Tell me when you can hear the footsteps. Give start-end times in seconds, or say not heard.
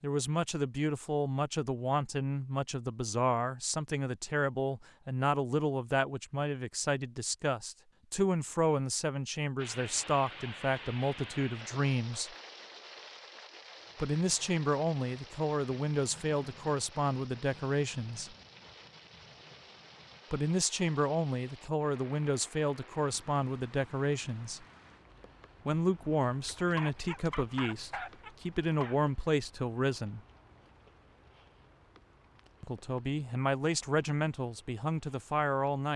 not heard.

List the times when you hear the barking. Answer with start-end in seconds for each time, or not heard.
26.4-28.9.